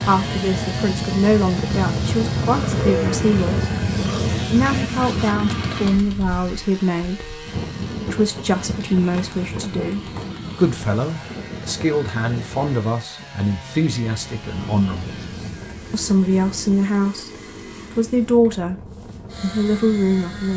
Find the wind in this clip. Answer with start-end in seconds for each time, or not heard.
0.0-20.5.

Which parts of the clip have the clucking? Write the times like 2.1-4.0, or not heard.
not heard.